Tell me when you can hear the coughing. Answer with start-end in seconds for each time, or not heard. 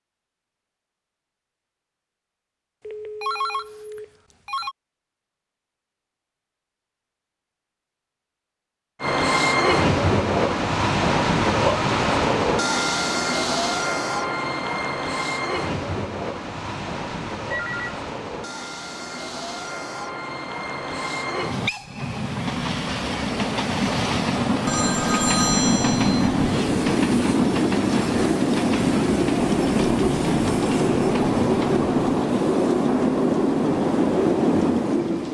not heard.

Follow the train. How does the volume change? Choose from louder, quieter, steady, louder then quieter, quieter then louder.
quieter then louder.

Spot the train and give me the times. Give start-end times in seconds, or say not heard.
9.0-35.2.